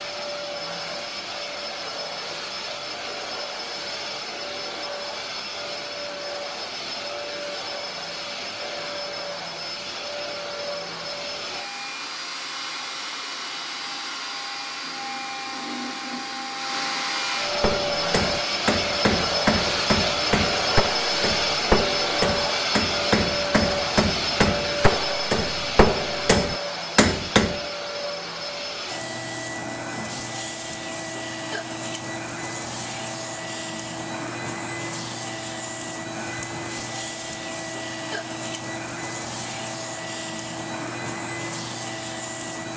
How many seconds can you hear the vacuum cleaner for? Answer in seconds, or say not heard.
43 s.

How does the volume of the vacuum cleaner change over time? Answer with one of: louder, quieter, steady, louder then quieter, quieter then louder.
louder then quieter.